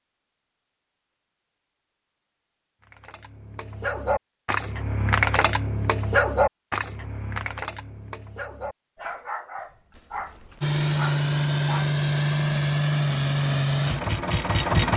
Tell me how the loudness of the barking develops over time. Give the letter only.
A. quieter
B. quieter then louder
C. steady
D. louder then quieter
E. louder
D.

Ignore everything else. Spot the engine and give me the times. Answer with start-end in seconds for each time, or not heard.
10.6-14.9.